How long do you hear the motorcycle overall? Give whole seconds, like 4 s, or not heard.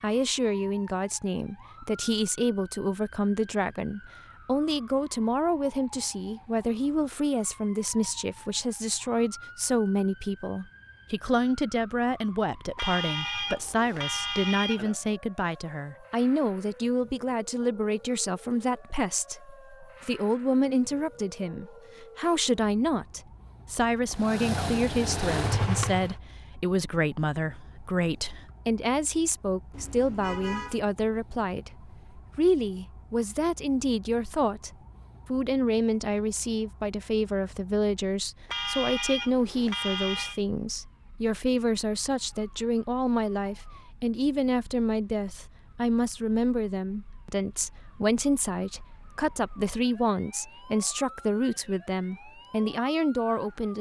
2 s.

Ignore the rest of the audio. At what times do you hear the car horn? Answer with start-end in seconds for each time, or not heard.
12.8-14.9, 29.7-30.8, 38.5-40.4.